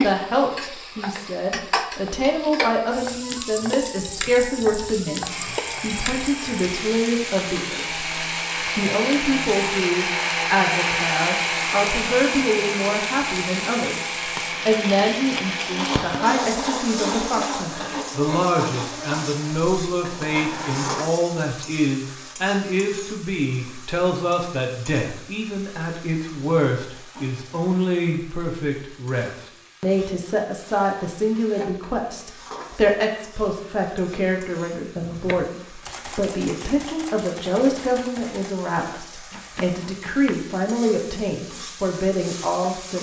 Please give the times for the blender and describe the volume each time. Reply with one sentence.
The blender can be heard from 5.2 to 21.1 s, getting louder then quieter.